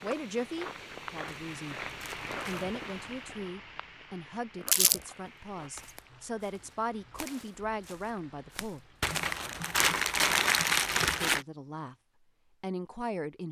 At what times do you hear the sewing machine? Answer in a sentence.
The sewing machine can't be heard in this clip.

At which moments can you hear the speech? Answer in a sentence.
The speech can be heard from 0.0 to 1.8 s, from 2.5 to 8.8 s, from 11.2 to 11.9 s and from 12.6 to 13.4 s.